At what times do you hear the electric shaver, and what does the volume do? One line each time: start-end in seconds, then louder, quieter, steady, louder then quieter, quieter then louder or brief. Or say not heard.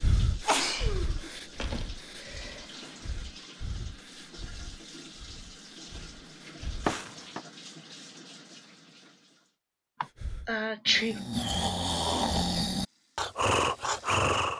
not heard.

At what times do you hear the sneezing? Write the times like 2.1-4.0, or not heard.
0.5-2.9, 6.8-7.4, 10.0-11.2.